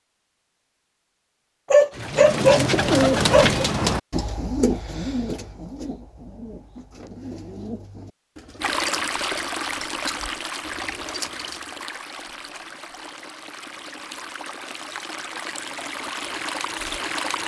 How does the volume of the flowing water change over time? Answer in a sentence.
The volume of the flowing water goes down, then up.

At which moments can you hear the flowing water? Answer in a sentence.
The flowing water can be heard from 8.6 to 17.4 s.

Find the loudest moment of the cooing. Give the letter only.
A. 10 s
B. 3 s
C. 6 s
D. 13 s
B.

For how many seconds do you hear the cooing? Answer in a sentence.
You can hear the cooing for 10 seconds altogether.